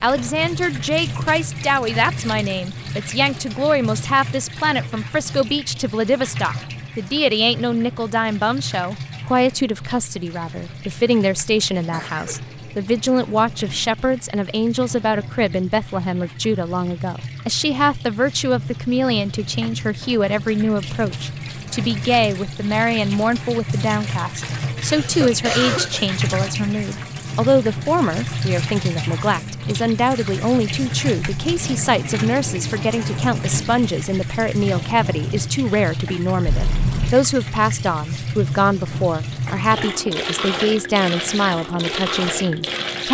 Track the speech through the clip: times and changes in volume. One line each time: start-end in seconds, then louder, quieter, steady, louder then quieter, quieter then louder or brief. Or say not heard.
0.0-43.1 steady.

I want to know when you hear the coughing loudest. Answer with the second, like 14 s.
26 s.